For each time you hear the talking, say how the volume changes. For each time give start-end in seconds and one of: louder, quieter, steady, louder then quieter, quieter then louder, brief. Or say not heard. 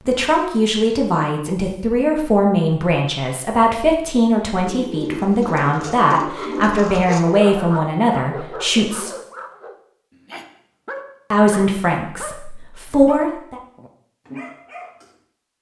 0.1-9.1 steady
11.3-13.6 brief.